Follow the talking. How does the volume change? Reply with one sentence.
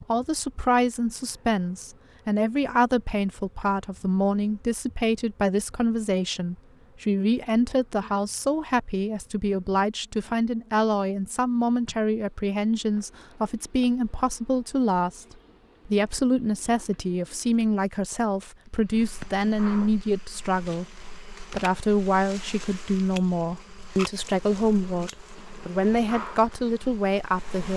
The loudness of the talking stays about the same.